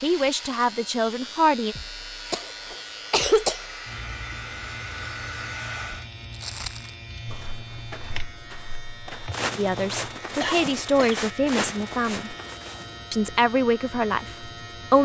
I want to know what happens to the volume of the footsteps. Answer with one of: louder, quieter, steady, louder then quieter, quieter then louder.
louder.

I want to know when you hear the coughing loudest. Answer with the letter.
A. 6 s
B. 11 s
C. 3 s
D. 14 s
C.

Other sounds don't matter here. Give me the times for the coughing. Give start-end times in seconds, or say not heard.
2.3-3.6, 10.4-11.8.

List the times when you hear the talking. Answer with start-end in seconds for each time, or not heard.
0.0-1.8, 9.6-12.3, 13.1-15.0.